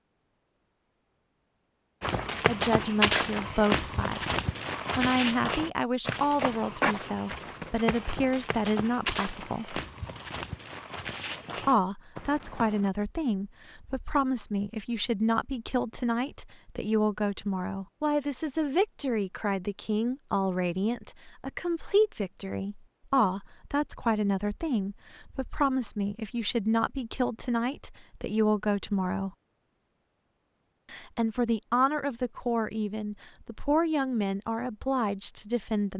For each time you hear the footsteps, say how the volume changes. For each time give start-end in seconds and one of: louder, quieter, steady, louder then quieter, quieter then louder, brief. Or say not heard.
2.0-12.9 quieter.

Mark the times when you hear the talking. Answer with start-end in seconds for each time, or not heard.
2.5-9.8, 11.7-29.3, 30.9-35.9.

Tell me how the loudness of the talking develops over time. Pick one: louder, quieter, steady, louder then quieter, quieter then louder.
steady.